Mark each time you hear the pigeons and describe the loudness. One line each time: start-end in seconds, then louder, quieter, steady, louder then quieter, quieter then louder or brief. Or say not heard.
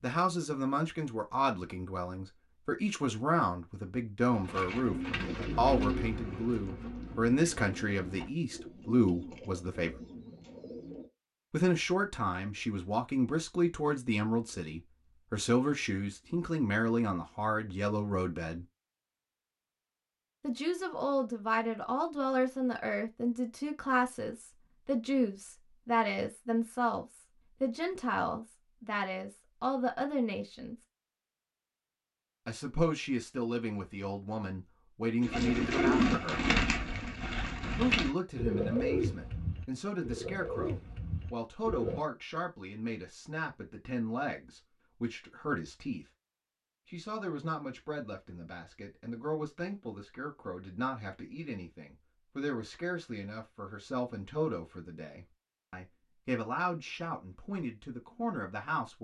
4.3-11.1 quieter
35.2-42.0 quieter.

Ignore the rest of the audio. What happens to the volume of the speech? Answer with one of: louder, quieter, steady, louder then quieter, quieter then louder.
quieter.